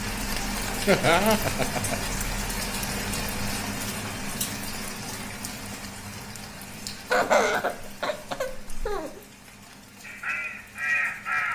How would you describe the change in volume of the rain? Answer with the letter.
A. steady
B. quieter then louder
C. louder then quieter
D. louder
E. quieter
E.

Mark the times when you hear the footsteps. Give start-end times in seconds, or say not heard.
not heard.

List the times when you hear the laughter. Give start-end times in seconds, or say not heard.
0.8-2.1, 6.9-9.2.